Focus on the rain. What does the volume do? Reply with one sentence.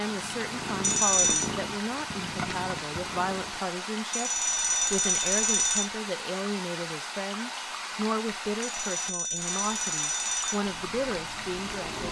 The loudness of the rain stays about the same.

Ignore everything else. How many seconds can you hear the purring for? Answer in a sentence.
The purring can be heard for 5 seconds in total.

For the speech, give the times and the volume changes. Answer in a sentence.
The speech can be heard from 0.0 to 12.0 s, at a steady volume.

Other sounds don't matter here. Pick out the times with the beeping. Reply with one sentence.
The beeping can be heard from 0.8 to 1.5 s, from 4.1 to 5.8 s and from 8.6 to 10.6 s.